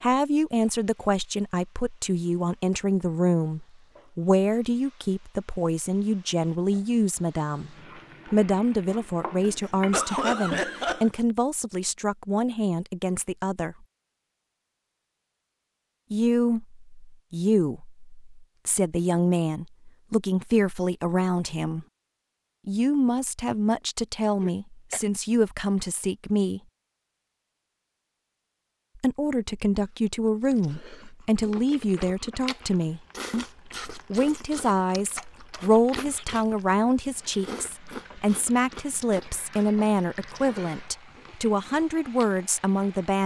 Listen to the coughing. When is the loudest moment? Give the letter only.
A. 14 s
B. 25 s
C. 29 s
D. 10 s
D.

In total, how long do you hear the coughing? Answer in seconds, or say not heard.
2 s.